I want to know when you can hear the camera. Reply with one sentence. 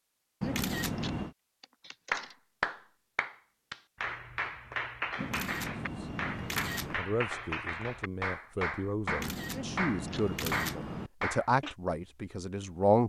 The camera can be heard from 0.4 to 1.4 s, from 5.2 to 7.0 s and from 9.1 to 11.1 s.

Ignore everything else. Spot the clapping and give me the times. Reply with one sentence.
The clapping can be heard from 2.1 to 11.8 s.